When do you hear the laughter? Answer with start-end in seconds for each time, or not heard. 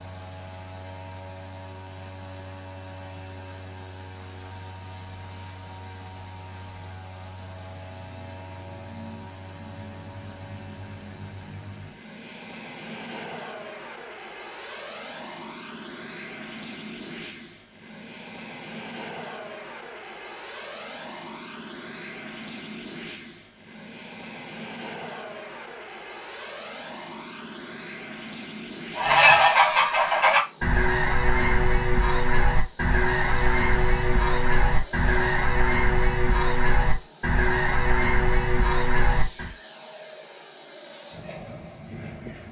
not heard.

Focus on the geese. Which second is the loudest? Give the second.
29 s.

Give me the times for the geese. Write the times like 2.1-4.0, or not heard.
28.9-39.5.